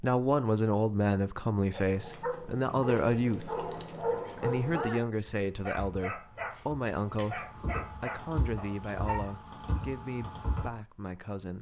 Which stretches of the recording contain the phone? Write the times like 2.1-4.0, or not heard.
not heard.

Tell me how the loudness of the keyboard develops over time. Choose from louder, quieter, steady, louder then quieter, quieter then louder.
louder.